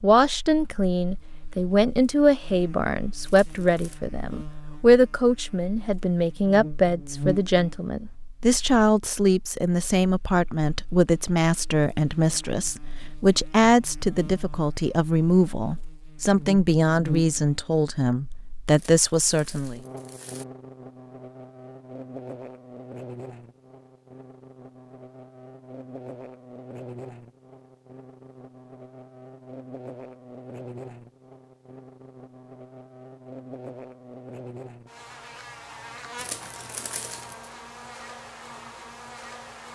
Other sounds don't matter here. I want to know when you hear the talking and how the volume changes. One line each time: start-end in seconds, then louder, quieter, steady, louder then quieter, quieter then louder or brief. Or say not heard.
0.0-19.8 steady.